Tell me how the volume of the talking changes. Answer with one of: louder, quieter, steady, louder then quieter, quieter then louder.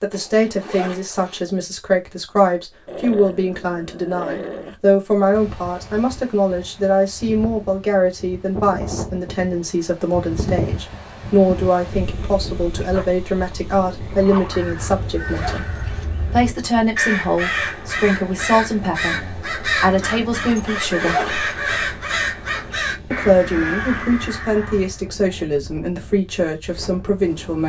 steady.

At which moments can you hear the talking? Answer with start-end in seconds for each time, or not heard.
0.0-15.7, 16.3-21.4, 23.1-27.6.